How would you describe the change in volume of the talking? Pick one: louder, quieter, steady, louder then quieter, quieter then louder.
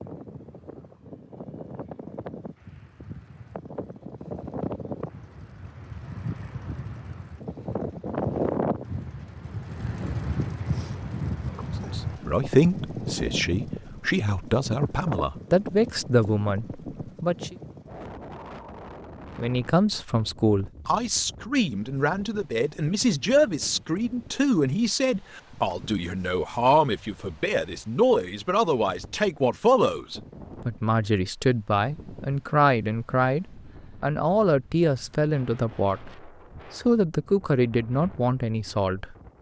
steady.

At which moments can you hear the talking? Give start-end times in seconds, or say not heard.
11.8-17.6, 19.4-39.1.